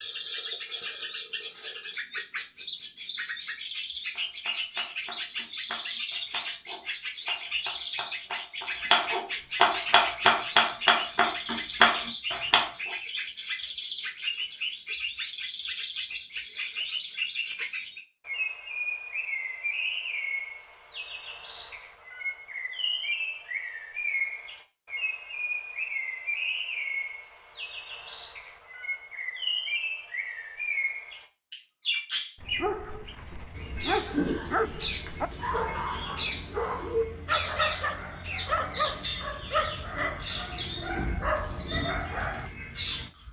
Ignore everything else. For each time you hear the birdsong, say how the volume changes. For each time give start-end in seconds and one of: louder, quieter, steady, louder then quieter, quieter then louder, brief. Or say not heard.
0.0-43.2 steady.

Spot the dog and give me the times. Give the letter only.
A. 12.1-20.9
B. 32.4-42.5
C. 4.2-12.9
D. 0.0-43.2
B.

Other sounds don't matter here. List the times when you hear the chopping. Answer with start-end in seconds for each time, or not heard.
4.2-12.9.